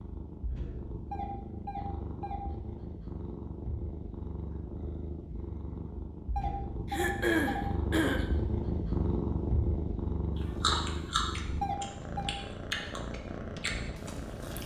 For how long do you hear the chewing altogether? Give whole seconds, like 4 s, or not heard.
4 s.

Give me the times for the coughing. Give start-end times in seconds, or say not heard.
6.8-8.2.